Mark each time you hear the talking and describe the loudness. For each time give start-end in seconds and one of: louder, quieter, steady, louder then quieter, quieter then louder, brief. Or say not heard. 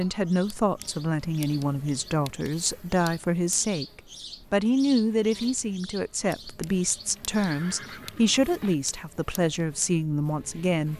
0.0-10.9 steady.